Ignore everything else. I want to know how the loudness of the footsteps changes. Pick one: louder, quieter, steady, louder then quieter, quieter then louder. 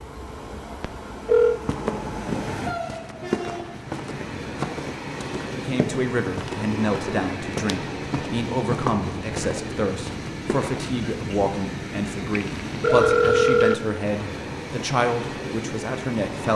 steady.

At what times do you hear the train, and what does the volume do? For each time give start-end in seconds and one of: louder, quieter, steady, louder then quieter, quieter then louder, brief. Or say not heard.
0.0-16.5 steady.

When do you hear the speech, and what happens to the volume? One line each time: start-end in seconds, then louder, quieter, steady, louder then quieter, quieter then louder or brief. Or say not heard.
5.5-16.5 steady.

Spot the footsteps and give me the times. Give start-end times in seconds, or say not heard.
1.5-10.8.